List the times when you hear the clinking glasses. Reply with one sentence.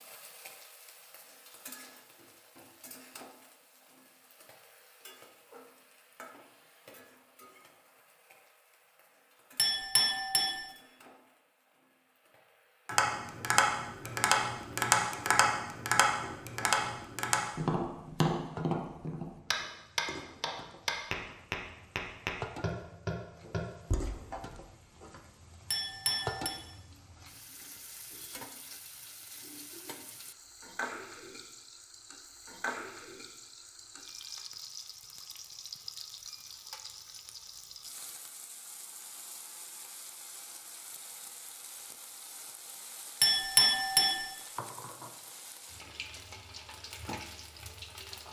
The clinking glasses can be heard from 9.6 to 10.6 s, from 25.7 to 26.6 s and from 43.2 to 44.2 s.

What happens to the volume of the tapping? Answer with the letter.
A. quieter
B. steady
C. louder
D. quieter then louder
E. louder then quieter
A.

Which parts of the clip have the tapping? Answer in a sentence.
The tapping can be heard from 12.8 to 24.4 s.